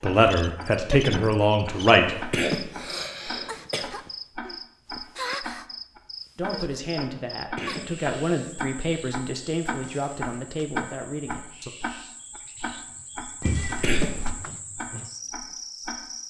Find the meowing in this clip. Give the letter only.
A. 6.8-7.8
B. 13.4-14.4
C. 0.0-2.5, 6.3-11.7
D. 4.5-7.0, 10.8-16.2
B.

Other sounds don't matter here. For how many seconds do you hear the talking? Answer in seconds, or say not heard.
8 s.